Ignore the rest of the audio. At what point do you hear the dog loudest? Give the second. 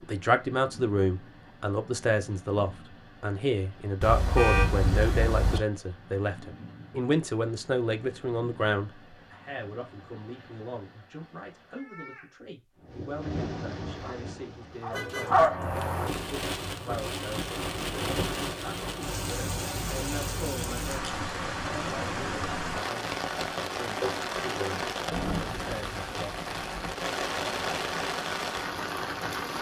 15 s.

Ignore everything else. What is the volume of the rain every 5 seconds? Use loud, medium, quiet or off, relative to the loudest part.
quiet, quiet, medium, loud, loud, loud.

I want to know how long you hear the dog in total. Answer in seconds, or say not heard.
2 s.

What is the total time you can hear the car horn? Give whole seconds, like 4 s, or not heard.
3 s.